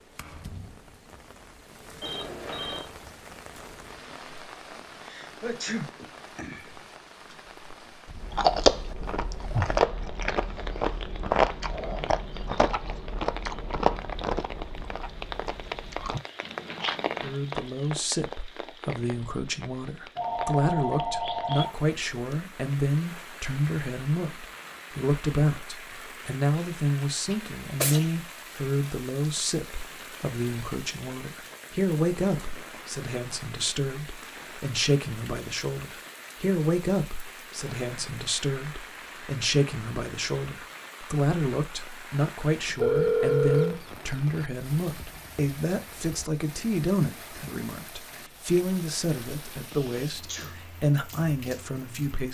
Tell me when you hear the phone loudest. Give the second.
43 s.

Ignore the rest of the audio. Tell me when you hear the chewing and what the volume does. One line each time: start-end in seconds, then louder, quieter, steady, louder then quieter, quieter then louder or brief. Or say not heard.
8.2-17.4 quieter.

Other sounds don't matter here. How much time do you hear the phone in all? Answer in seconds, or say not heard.
3 s.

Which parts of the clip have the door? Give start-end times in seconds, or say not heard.
not heard.